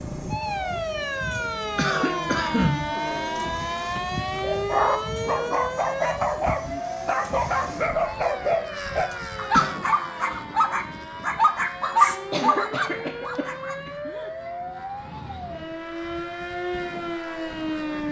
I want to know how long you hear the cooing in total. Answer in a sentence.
The cooing can't be heard in this clip.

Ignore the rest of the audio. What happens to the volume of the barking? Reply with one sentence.
The volume of the barking goes up.